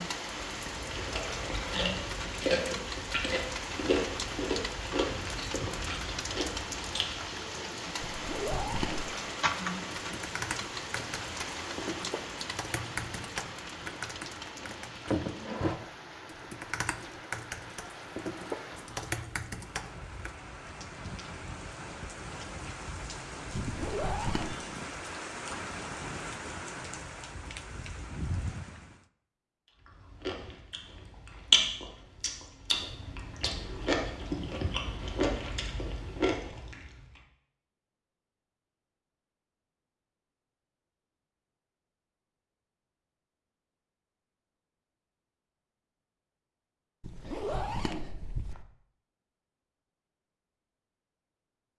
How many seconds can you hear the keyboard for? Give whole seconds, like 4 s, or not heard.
11 s.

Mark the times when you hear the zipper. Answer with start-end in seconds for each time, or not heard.
8.0-9.1, 23.6-24.6, 47.0-48.6.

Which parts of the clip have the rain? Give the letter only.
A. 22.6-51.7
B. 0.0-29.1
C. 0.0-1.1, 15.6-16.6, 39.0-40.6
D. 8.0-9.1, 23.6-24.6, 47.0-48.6
B.